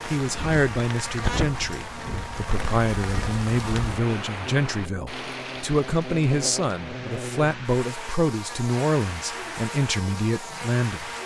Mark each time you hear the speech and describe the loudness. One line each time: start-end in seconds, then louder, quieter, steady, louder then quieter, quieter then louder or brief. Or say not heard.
0.1-11.1 steady.